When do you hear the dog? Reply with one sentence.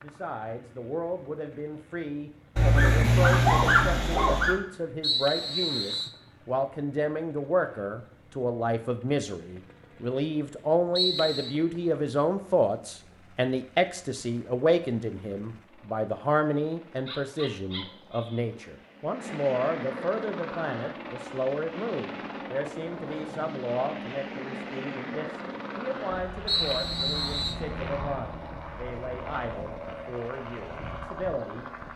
The dog can be heard from 2.5 to 4.6 s and from 17.1 to 18.4 s.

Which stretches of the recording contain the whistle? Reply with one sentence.
The whistle can be heard from 5.0 to 6.1 s, from 10.9 to 11.6 s and from 26.4 to 27.6 s.